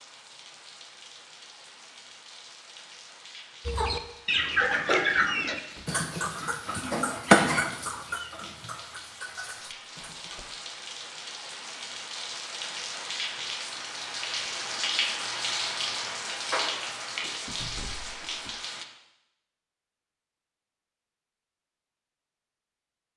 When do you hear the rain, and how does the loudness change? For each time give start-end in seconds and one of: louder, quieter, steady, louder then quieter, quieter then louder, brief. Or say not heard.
0.0-18.9 louder.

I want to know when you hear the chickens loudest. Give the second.
7 s.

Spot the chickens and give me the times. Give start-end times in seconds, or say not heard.
3.6-10.6.